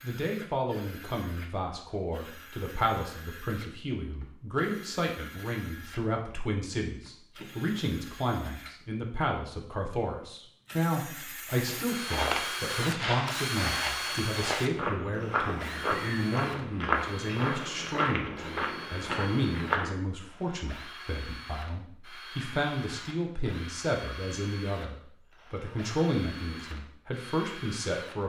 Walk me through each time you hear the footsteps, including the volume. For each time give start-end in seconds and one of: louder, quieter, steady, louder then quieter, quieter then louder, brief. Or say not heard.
11.5-19.9 steady.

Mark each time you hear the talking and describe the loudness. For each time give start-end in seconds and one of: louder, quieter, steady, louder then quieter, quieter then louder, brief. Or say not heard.
0.0-28.2 steady.